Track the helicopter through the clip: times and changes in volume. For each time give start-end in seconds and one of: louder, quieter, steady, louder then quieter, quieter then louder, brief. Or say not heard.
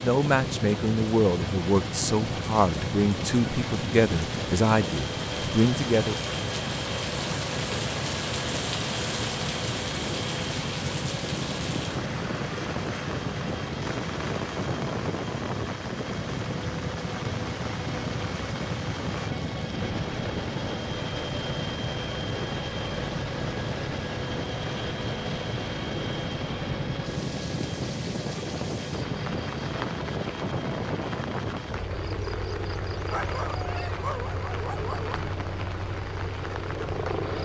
0.0-37.4 steady.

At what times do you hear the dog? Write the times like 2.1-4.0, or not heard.
33.1-35.1.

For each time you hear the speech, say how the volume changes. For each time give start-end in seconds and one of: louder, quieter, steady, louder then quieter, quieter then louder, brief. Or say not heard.
0.0-6.2 steady.